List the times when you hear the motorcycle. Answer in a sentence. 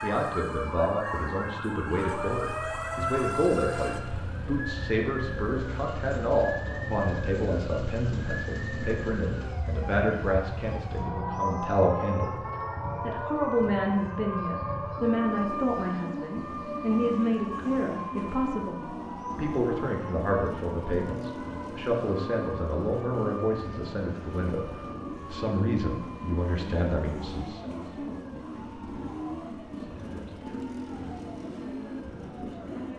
The motorcycle can be heard from 1.9 to 32.9 s.